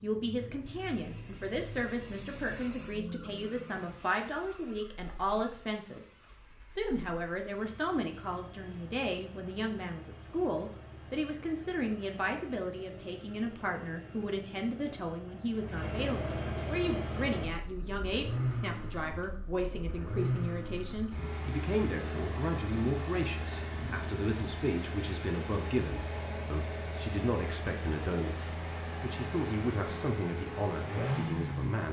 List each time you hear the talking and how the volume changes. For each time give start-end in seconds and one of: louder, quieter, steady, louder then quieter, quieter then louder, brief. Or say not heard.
0.0-31.8 steady.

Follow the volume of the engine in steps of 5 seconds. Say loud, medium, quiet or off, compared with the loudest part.
quiet, quiet, quiet, loud, loud, medium, loud.